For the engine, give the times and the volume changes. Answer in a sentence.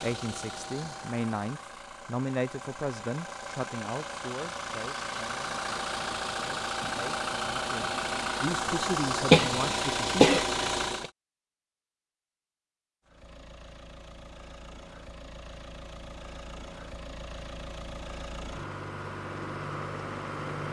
You can hear the engine from 0.0 to 11.1 s, getting louder; and from 13.1 to 20.6 s, getting louder.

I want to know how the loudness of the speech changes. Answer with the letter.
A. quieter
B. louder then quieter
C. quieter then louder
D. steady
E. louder
C.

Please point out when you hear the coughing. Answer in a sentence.
The coughing can be heard from 9.3 to 11.1 s.